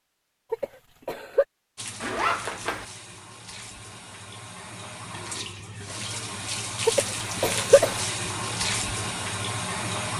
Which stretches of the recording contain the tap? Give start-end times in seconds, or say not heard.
1.8-10.1.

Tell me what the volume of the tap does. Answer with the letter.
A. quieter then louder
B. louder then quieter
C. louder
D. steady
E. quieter
C.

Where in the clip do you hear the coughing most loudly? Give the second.
8 s.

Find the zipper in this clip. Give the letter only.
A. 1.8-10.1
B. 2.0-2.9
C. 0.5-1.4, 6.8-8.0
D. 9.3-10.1
B.